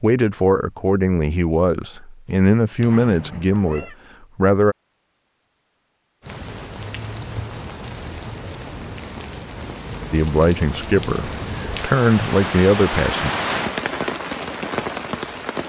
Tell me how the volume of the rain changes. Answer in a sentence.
The loudness of the rain goes up.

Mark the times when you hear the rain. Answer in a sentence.
The rain can be heard from 6.2 to 15.6 s.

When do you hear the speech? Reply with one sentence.
The speech can be heard from 0.0 to 4.8 s and from 10.1 to 13.3 s.